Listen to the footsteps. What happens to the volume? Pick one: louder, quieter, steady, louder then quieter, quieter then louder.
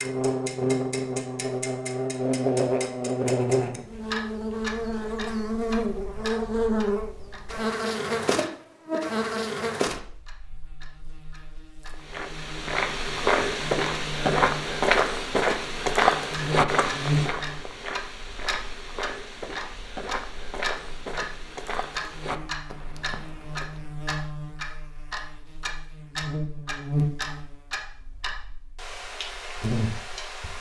quieter.